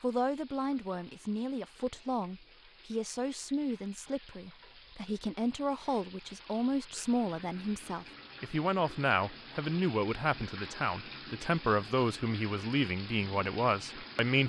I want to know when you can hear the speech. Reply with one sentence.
The speech can be heard from 0.0 to 14.4 s.